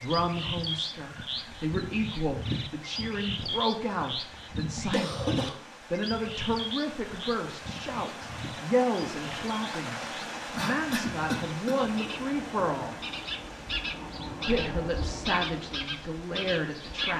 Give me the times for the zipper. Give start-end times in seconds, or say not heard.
not heard.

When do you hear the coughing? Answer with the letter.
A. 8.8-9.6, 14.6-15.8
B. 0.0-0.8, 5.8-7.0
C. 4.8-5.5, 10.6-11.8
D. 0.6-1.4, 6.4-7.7
C.